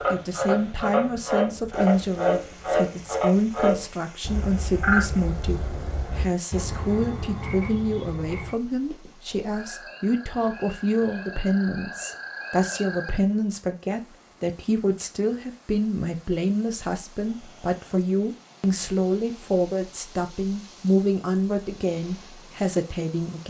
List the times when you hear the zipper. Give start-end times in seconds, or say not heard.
not heard.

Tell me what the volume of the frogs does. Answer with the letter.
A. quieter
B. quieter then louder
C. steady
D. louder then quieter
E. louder
A.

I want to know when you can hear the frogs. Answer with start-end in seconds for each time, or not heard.
0.0-13.2.